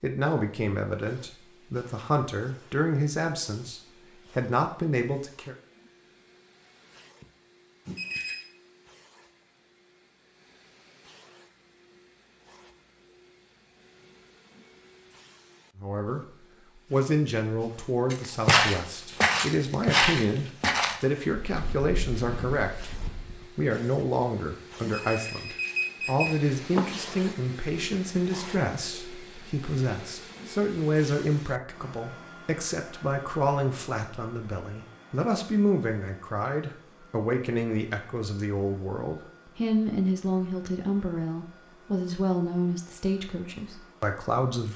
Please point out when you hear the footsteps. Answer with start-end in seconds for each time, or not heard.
18.1-23.4.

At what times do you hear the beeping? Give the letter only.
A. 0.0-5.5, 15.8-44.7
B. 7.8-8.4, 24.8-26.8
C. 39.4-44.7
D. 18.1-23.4
B.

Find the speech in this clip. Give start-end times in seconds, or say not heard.
0.0-5.5, 15.8-44.7.